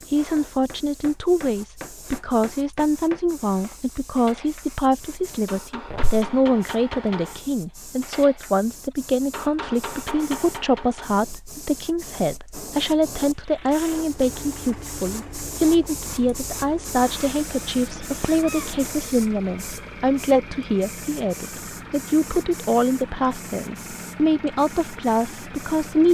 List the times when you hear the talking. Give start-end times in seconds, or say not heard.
0.1-26.0.